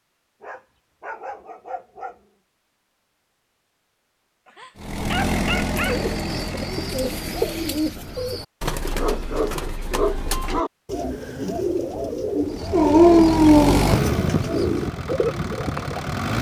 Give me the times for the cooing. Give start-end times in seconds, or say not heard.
5.7-16.1.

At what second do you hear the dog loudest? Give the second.
13 s.